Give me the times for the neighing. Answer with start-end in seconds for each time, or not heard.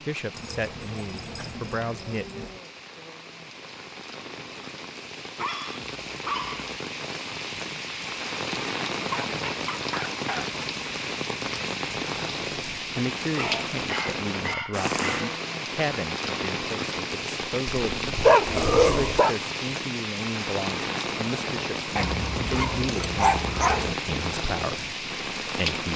not heard.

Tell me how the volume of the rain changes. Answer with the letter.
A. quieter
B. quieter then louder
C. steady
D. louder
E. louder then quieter
D.